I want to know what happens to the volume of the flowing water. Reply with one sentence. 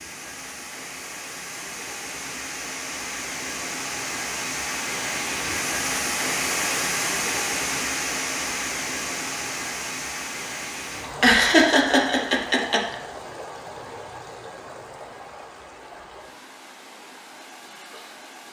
The loudness of the flowing water goes up, then down.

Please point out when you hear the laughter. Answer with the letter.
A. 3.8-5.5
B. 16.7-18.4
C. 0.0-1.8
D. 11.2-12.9
D.